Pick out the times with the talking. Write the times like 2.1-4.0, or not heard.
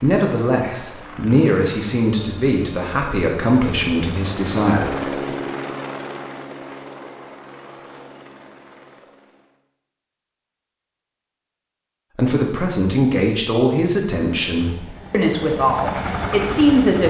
0.0-5.3, 12.2-17.0.